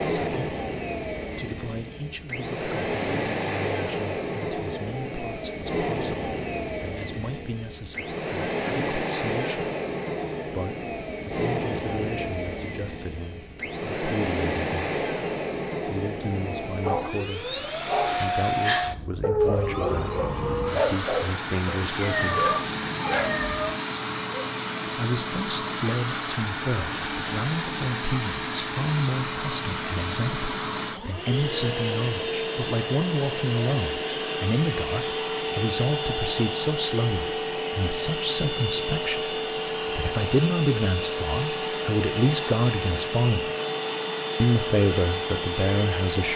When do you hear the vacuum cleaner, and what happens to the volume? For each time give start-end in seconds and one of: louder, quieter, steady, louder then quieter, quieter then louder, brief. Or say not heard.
0.0-46.3 steady.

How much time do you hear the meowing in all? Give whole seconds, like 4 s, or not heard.
2 s.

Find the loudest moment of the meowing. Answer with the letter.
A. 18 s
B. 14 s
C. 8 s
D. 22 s
D.